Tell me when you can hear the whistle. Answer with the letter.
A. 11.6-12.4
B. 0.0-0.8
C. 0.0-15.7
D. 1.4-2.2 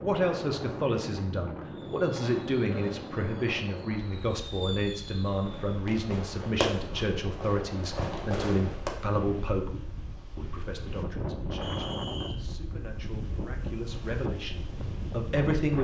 A.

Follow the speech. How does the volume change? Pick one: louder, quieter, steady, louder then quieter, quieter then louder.
quieter.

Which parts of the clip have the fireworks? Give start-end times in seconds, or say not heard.
1.7-8.9.